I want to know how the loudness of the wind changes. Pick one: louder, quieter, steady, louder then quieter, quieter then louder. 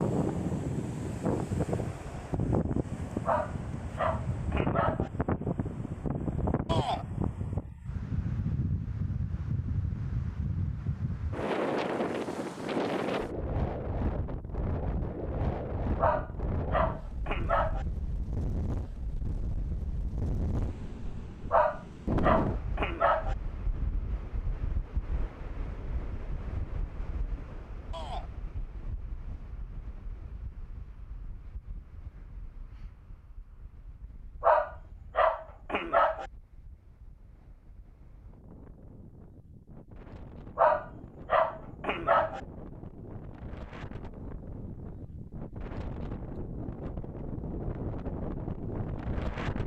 quieter then louder.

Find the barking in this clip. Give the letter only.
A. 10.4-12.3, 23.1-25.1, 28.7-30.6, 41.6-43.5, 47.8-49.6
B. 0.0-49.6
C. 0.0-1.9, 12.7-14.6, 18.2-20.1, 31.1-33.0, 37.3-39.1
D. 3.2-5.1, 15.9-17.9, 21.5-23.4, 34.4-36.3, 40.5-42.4
D.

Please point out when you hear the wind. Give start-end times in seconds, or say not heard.
0.0-49.6.